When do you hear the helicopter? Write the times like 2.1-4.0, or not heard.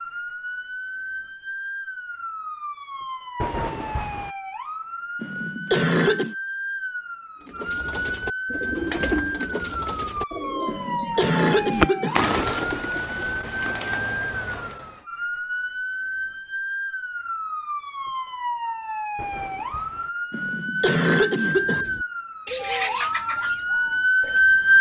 not heard.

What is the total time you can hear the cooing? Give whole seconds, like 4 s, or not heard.
11 s.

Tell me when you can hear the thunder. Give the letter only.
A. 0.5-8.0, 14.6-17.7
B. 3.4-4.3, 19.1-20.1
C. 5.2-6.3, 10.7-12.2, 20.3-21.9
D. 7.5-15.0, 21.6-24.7
B.